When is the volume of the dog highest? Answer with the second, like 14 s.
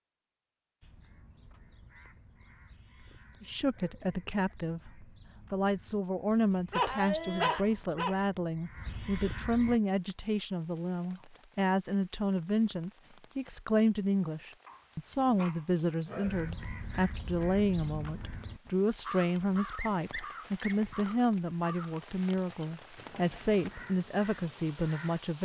7 s.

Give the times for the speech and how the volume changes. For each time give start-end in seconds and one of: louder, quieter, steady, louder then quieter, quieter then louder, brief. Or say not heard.
3.4-25.4 steady.